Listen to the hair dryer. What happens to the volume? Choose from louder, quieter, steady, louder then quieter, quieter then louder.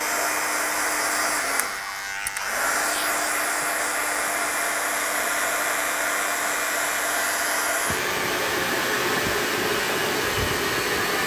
steady.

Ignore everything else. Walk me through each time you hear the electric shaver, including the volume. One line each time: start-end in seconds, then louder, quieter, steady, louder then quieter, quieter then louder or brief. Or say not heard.
0.0-11.2 steady.